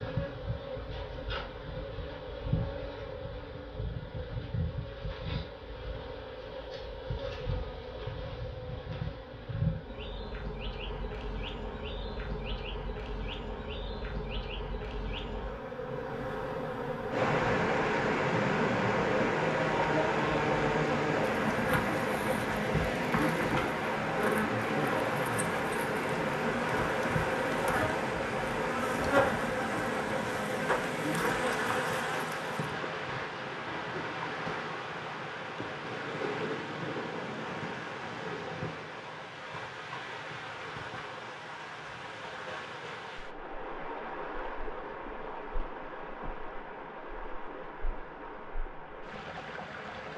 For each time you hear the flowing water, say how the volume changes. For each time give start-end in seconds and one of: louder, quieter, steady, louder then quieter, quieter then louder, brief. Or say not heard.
17.1-50.1 quieter.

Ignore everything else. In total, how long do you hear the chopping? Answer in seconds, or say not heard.
not heard.